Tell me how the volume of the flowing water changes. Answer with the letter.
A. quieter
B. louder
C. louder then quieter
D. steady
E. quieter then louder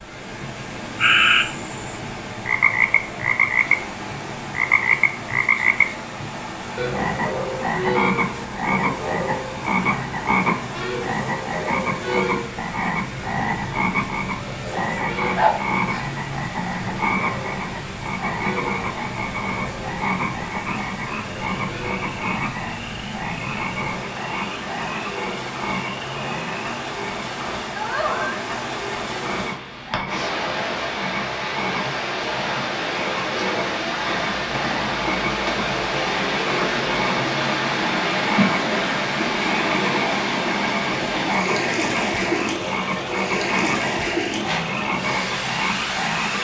B.